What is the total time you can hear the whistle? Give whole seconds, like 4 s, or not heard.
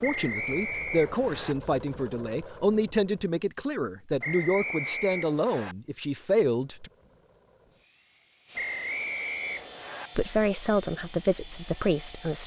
5 s.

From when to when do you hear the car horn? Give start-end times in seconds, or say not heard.
not heard.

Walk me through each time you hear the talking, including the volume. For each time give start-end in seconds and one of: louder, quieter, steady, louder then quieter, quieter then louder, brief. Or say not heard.
0.0-6.9 steady
10.2-12.4 brief.